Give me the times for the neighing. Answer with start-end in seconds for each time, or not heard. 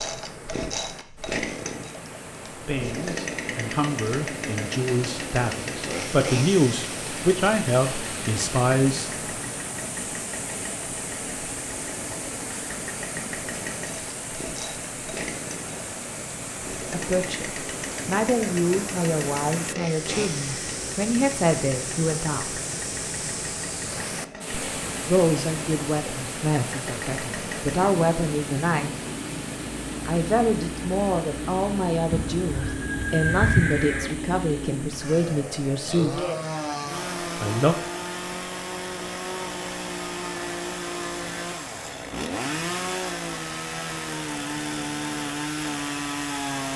32.1-34.1.